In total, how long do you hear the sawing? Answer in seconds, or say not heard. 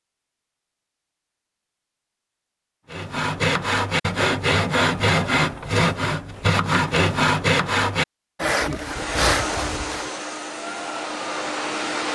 7 s.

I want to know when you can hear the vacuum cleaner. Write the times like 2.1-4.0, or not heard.
8.8-12.0.